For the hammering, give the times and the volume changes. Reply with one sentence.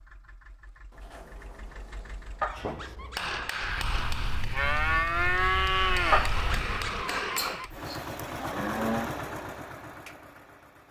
You can hear the hammering from 2.5 to 7.7 s, getting quieter then louder.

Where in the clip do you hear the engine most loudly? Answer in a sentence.
The volume of the engine peaks at 9 seconds.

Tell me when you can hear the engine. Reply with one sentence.
The engine can be heard from 0.0 to 2.6 s and from 7.6 to 10.8 s.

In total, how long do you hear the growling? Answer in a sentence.
You can hear the growling for 3 seconds altogether.